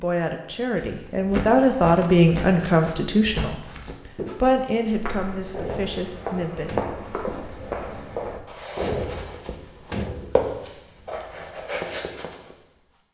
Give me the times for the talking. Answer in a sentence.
The talking can be heard from 0.0 to 6.7 s.